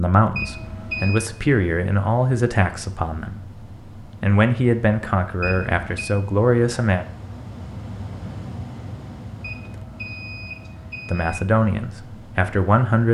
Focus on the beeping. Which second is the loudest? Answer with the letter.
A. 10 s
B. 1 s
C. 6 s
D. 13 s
B.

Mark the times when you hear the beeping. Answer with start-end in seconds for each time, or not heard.
0.3-1.2, 5.4-6.2, 9.4-11.4.